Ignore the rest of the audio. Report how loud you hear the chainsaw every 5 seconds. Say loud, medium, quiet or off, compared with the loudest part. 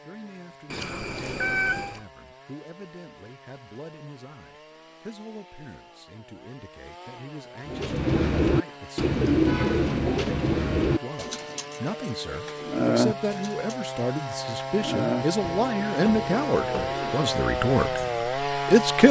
quiet, quiet, medium, loud.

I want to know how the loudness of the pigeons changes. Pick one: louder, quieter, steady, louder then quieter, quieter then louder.
quieter.